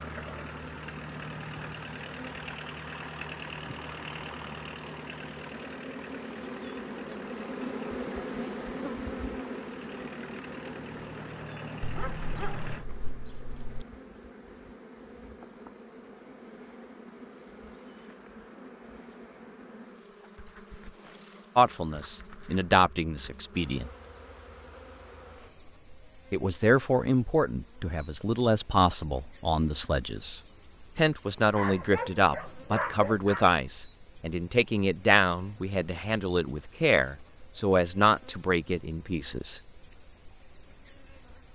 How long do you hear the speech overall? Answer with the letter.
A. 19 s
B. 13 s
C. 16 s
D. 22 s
C.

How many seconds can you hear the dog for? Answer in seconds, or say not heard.
4 s.